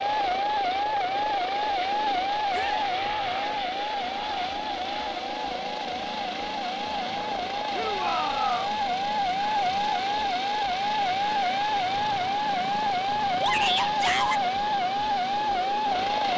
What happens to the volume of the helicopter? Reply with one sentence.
The volume of the helicopter stays about the same.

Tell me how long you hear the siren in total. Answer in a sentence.
The siren can be heard for 16 seconds in total.